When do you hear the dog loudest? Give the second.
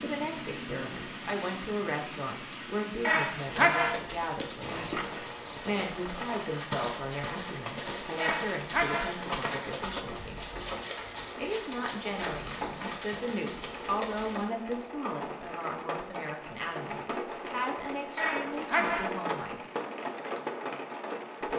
4 s.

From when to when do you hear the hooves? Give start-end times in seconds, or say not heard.
3.1-14.5.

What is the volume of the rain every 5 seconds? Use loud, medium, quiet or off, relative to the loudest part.
medium, medium, medium, loud, loud.